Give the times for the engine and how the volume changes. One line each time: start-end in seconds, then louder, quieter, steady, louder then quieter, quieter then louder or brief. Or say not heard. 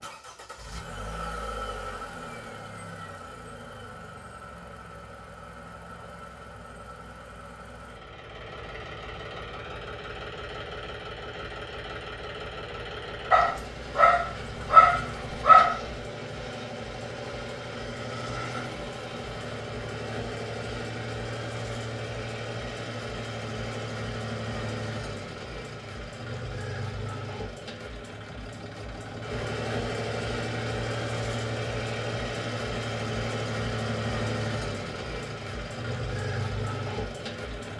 0.0-37.7 louder.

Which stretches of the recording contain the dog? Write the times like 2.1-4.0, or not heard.
13.3-15.8.